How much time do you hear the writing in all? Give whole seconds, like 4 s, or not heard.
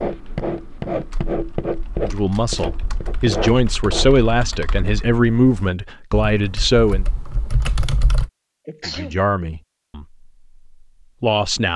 4 s.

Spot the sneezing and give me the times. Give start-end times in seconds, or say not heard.
8.7-9.2.